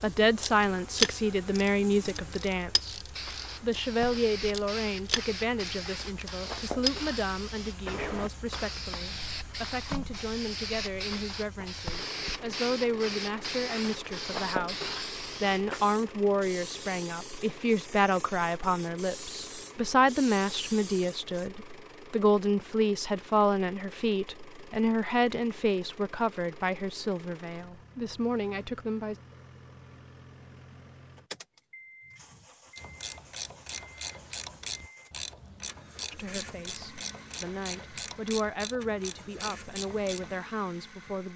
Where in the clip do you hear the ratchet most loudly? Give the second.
1 s.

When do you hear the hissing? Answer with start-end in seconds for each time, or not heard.
3.0-21.5.